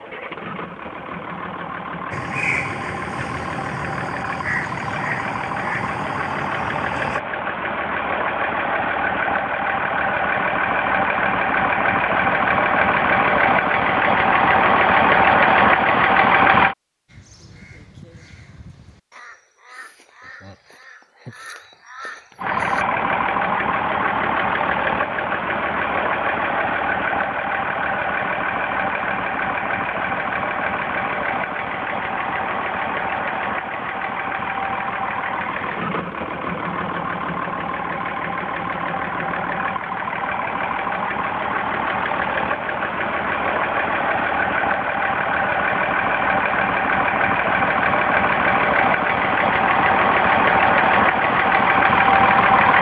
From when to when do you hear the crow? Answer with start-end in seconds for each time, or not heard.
2.1-7.2, 17.1-22.9.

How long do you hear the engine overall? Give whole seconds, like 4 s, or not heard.
47 s.